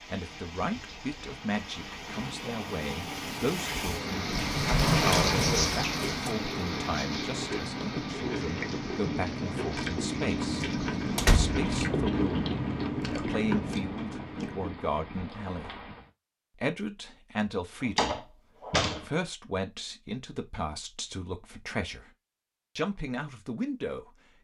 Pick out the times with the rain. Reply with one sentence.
The rain can be heard from 0.0 to 16.1 s.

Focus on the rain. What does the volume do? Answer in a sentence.
The loudness of the rain goes up, then down.